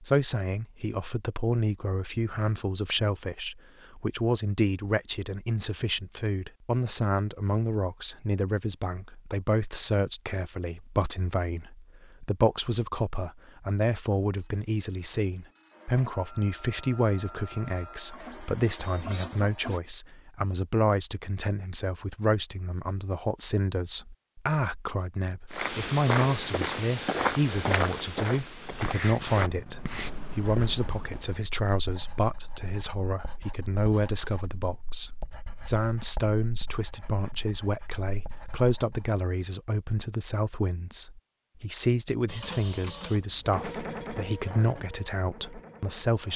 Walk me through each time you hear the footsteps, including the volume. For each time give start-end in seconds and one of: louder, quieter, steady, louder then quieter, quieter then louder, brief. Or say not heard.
25.5-31.3 quieter.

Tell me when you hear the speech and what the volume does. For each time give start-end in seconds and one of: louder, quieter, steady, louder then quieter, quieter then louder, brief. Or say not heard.
0.0-46.3 steady.